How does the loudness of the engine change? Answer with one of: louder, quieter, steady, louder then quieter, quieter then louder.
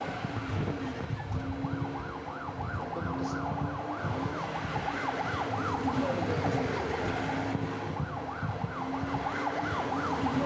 steady.